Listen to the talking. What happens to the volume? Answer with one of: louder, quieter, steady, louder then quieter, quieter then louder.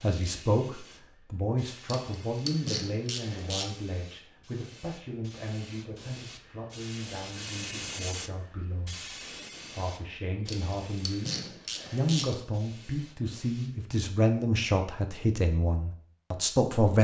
quieter then louder.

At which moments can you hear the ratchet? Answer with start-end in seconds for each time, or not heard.
1.9-3.7, 10.4-12.3.